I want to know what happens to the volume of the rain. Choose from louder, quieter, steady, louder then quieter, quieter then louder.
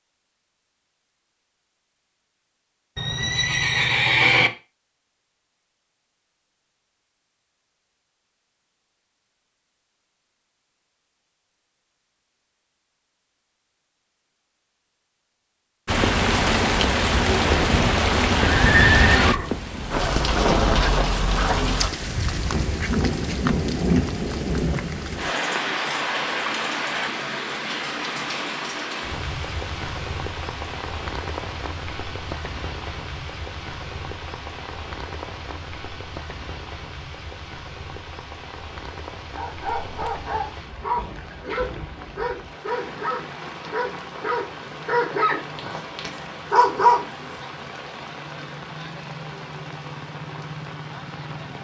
quieter.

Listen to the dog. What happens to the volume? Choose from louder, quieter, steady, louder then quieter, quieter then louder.
louder.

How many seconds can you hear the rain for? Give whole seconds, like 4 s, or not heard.
36 s.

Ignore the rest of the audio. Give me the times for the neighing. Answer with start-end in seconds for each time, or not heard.
3.0-4.5, 17.6-19.6, 39.6-40.2.